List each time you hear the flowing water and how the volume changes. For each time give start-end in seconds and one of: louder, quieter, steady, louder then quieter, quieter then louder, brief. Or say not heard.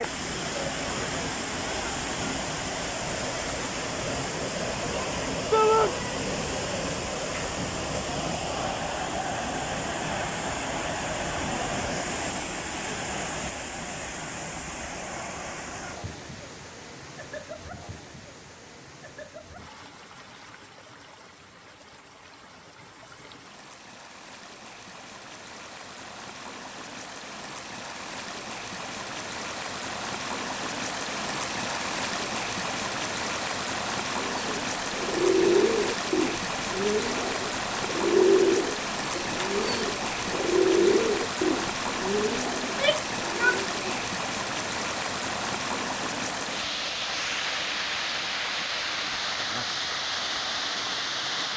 0.0-51.5 quieter then louder.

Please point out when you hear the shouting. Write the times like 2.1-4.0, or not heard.
5.5-6.0, 42.6-44.0.